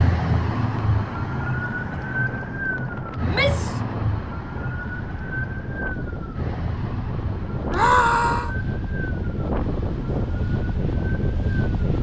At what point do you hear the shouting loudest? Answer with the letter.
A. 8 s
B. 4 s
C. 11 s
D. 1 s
A.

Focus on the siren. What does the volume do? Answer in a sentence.
The volume of the siren goes down.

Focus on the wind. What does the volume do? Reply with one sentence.
The loudness of the wind goes up.